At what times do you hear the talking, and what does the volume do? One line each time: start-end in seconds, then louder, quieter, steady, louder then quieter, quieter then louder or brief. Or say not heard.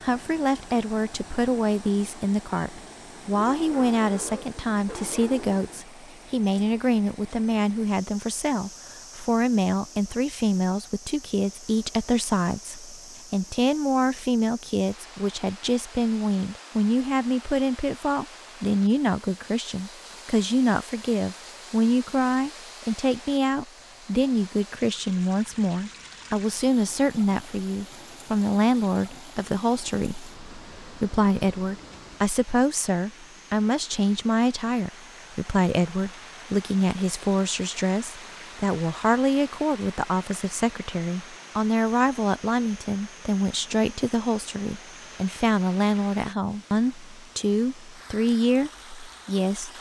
0.0-49.7 steady.